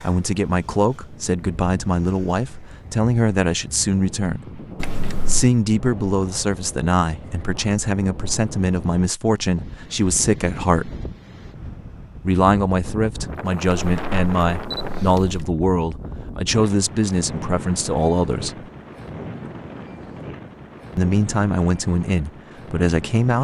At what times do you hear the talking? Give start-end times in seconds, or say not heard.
0.0-4.6, 5.2-10.9, 12.2-18.6, 20.9-23.3.